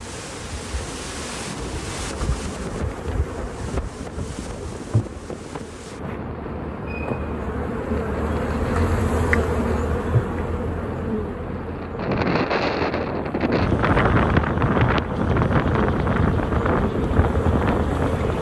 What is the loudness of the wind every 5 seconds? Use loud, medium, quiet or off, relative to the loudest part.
quiet, quiet, loud, loud.